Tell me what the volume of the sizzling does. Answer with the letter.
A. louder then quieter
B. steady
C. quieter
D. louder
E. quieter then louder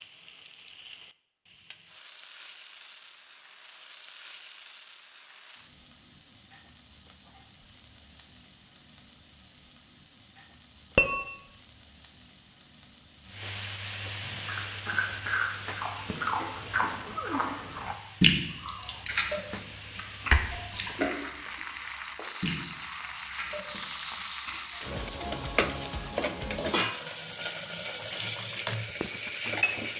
D.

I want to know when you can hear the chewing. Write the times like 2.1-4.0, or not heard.
14.2-24.8.